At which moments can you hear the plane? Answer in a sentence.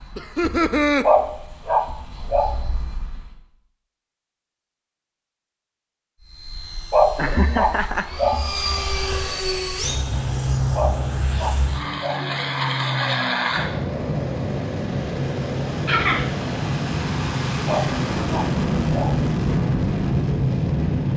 The plane can be heard from 0.0 to 3.4 s and from 6.2 to 21.1 s.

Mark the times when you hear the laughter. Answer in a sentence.
You can hear the laughter from 0.1 to 1.1 s, from 7.2 to 8.1 s and from 15.8 to 16.4 s.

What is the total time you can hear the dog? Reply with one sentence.
You can hear the dog for 6 seconds altogether.